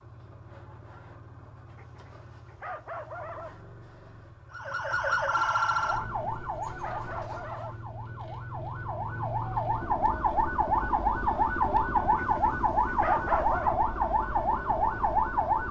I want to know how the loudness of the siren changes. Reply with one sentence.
The volume of the siren goes down, then up.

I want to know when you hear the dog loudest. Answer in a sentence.
The loudest moment of the dog is at 13 seconds.